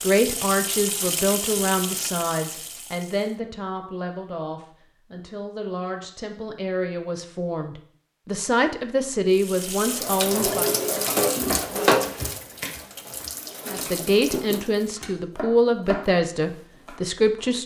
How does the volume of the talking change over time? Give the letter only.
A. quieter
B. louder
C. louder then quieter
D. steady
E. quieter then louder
E.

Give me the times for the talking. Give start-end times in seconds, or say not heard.
0.0-10.7, 13.7-17.6.